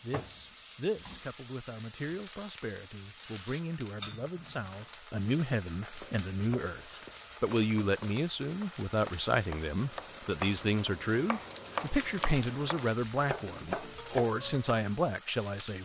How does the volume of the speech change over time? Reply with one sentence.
The volume of the speech goes up.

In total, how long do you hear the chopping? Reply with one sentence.
The chopping can be heard for 9 seconds in total.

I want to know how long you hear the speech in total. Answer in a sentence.
The speech can be heard for 16 seconds in total.